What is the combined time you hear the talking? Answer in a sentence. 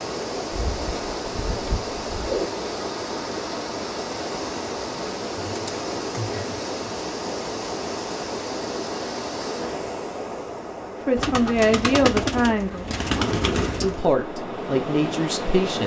You can hear the talking for 4 seconds altogether.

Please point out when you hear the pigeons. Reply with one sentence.
The pigeons can be heard from 0.5 to 2.5 s, from 5.3 to 6.6 s and from 11.2 to 14.1 s.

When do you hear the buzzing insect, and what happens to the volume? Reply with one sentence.
You can't hear the buzzing insect here.